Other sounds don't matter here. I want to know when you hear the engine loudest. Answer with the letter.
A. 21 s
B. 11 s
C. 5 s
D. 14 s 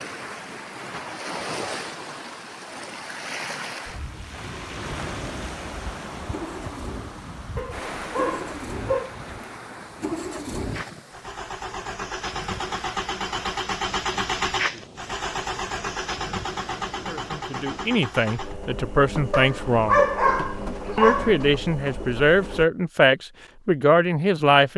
D.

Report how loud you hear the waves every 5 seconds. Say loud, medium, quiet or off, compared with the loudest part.
loud, loud, medium, medium, off.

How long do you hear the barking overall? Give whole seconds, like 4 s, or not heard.
4 s.